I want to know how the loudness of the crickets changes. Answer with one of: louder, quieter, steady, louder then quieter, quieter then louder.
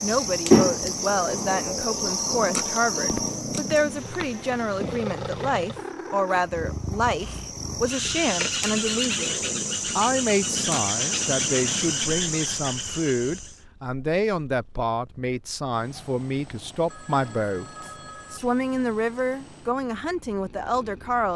quieter then louder.